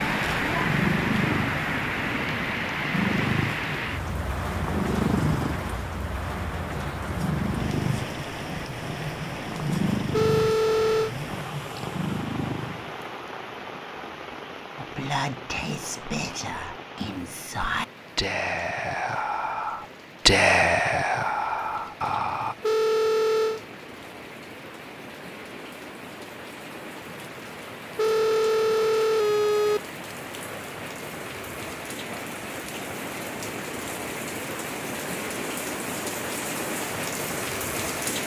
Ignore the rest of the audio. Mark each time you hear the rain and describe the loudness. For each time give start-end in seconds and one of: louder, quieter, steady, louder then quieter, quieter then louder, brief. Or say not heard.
0.0-38.2 quieter then louder.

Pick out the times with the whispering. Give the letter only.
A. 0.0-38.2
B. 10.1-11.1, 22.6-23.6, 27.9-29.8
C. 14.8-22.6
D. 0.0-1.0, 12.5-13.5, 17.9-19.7
C.